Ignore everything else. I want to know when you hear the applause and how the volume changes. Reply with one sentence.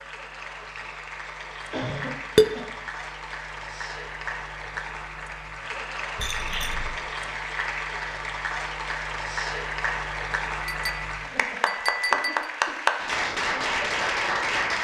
The applause can be heard from 0.0 to 14.7 s, getting louder.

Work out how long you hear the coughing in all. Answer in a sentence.
You can hear the coughing for 4 seconds altogether.